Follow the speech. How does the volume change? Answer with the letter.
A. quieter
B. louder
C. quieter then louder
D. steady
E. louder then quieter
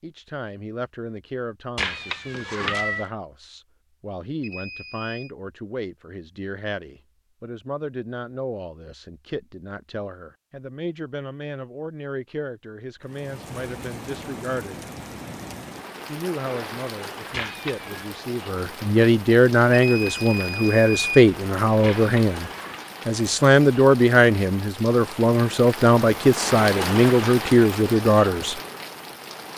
B.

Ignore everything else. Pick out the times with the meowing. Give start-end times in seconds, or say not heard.
1.8-3.1, 17.3-18.1, 21.8-22.8.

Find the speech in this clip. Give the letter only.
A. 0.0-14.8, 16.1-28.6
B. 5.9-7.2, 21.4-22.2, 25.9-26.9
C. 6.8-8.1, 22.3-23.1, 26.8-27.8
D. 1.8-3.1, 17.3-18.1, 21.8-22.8
A.